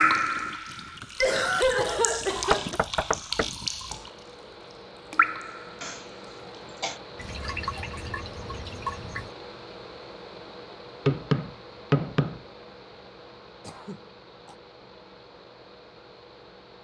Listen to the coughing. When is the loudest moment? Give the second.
2 s.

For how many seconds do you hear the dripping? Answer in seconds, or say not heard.
8 s.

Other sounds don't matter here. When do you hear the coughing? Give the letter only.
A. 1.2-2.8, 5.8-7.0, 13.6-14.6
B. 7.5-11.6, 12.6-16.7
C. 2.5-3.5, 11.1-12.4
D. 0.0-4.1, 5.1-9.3
A.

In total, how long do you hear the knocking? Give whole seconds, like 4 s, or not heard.
2 s.